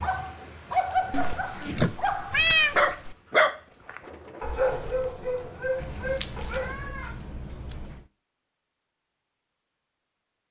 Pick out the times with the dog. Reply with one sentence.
You can hear the dog from 0.0 to 6.9 s.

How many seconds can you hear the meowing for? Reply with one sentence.
The meowing can be heard for 4 seconds in total.